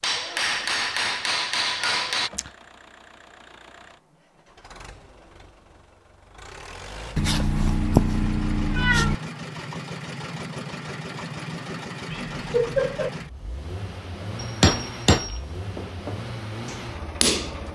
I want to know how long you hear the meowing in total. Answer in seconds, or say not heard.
4 s.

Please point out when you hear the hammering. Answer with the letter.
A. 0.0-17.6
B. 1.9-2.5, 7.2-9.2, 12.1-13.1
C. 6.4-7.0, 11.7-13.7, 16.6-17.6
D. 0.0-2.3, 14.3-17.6
D.